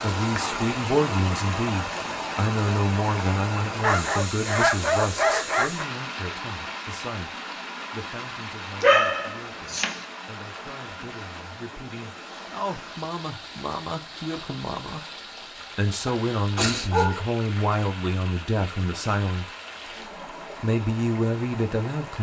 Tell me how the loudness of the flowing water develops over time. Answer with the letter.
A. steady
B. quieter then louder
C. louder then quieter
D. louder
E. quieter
E.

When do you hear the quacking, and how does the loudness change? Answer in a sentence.
You can't hear the quacking here.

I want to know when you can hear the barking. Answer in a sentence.
The barking can be heard from 3.8 to 5.8 s, from 8.8 to 10.1 s and from 16.1 to 17.2 s.